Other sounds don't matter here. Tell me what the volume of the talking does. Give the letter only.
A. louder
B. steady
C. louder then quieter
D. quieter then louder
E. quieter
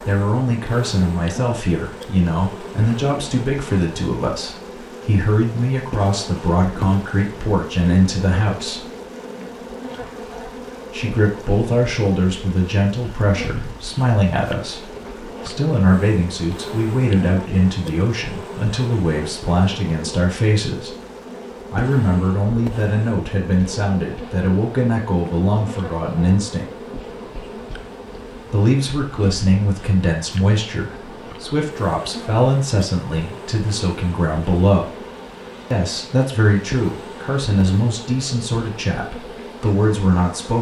B.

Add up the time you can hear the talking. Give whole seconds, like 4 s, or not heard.
35 s.